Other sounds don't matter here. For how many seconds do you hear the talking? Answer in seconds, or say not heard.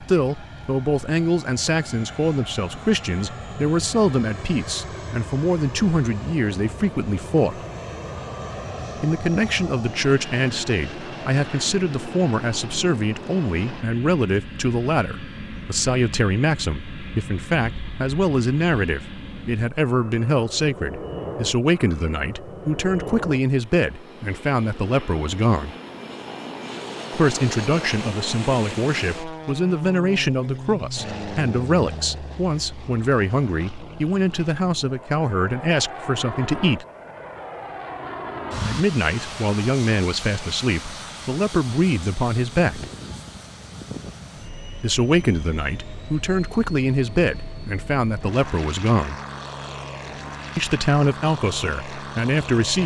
45 s.